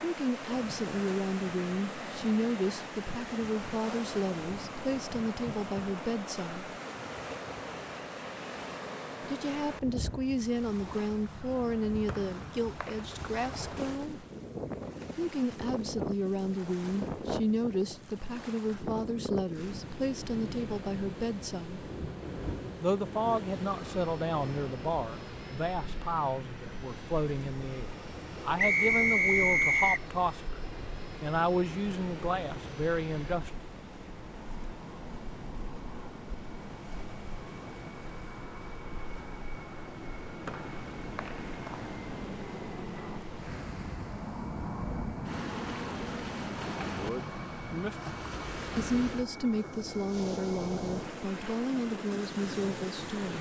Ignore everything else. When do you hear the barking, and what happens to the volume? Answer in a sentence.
The barking can't be heard in this clip.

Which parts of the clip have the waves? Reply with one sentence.
The waves can be heard from 0.0 to 53.3 s.